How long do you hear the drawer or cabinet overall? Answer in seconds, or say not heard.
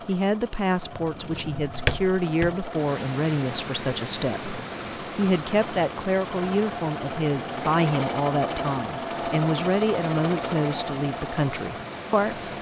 2 s.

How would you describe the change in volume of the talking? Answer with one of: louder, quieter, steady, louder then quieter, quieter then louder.
steady.